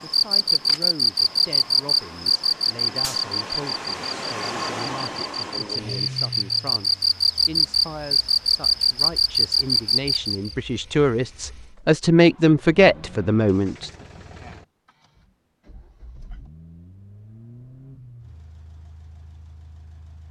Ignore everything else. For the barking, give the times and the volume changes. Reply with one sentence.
The barking can't be heard in this clip.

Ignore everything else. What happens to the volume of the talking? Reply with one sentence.
The volume of the talking goes up.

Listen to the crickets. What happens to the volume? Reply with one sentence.
The volume of the crickets goes down, then up.